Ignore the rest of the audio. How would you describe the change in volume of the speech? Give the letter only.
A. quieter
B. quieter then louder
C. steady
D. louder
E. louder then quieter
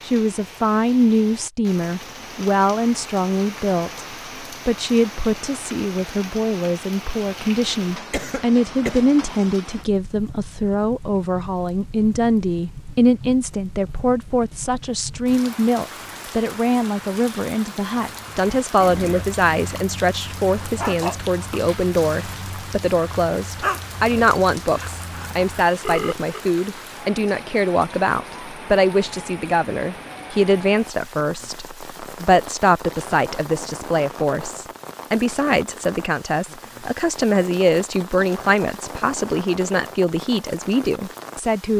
C.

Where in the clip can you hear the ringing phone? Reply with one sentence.
The ringing phone can be heard from 25.9 to 26.4 s.